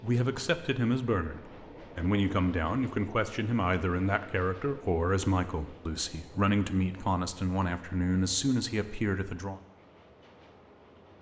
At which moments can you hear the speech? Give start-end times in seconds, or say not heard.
0.0-9.6.